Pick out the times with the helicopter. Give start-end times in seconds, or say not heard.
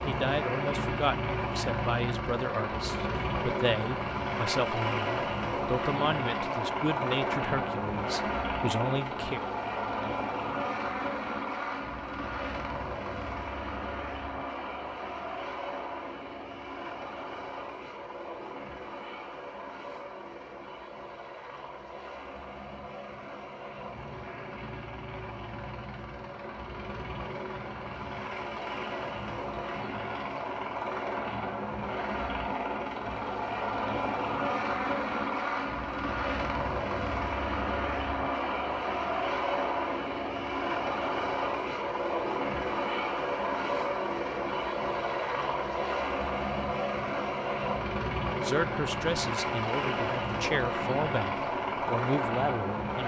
0.0-53.0.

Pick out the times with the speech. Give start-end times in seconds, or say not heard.
0.1-9.4, 48.4-53.0.